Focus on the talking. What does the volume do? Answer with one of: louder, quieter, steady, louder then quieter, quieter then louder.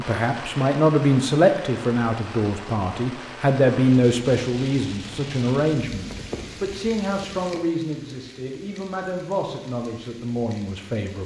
quieter.